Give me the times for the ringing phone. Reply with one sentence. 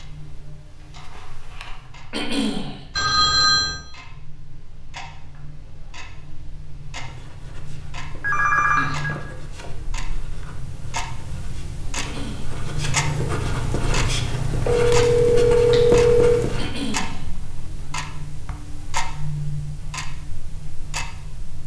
The ringing phone can be heard from 3.0 to 3.8 s, from 8.2 to 9.2 s and from 14.7 to 16.4 s.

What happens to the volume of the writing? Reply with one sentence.
The volume of the writing goes up.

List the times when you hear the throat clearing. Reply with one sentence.
The throat clearing can be heard from 2.1 to 2.8 s, from 11.9 to 12.6 s and from 16.6 to 17.2 s.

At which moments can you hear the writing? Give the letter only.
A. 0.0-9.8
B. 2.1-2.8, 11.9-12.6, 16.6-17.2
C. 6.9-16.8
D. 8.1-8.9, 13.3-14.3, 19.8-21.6
C.